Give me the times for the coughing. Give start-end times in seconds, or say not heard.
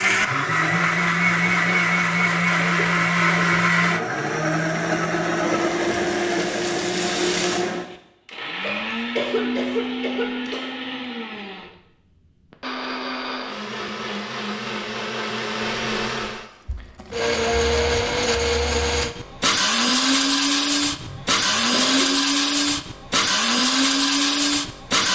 2.8-3.5, 8.6-10.7, 20.9-22.1.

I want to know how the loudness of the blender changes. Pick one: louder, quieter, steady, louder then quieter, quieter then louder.
quieter then louder.